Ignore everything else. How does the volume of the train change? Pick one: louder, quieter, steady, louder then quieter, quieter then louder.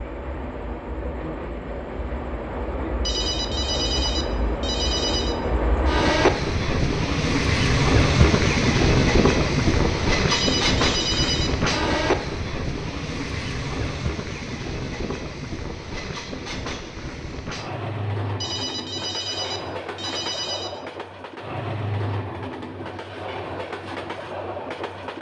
louder then quieter.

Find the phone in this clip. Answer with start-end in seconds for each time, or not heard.
3.0-5.3, 10.3-11.5, 18.4-20.8.